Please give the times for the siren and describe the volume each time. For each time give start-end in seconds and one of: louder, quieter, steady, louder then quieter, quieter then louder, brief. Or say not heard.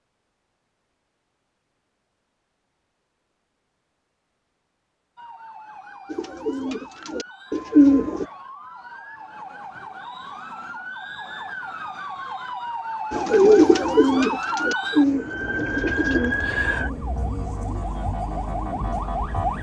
5.2-19.5 louder.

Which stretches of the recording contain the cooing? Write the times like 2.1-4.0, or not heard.
6.0-8.2, 13.1-16.4.